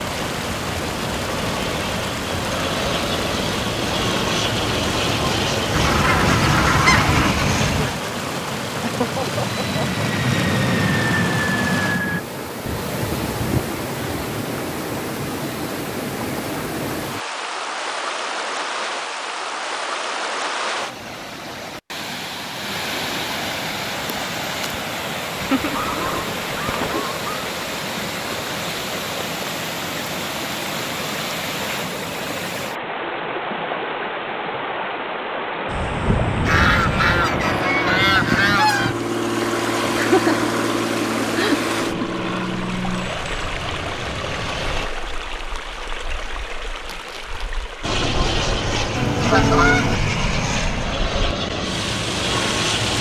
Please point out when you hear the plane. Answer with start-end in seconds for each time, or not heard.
0.0-12.2, 35.6-44.9, 47.8-52.9.